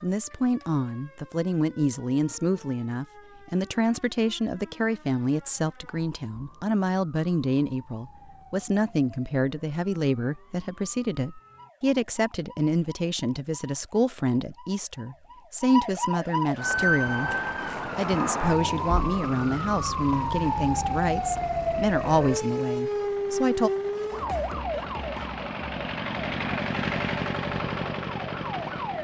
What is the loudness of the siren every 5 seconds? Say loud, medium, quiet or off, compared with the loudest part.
quiet, quiet, quiet, loud, loud, medium.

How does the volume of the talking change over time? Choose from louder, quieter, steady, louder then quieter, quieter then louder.
steady.